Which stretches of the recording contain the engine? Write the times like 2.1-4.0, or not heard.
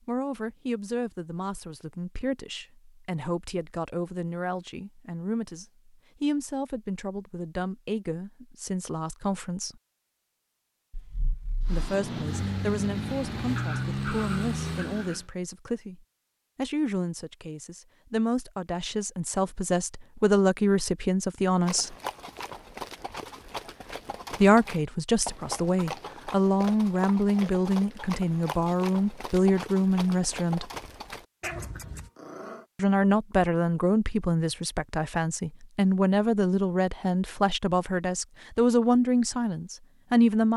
11.7-15.2.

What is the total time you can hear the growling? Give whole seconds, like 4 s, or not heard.
4 s.